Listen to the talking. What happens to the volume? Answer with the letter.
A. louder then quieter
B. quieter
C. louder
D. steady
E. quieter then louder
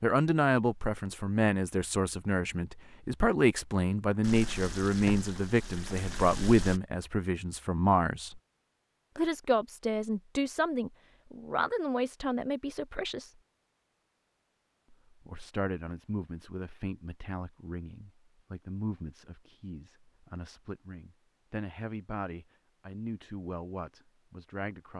B.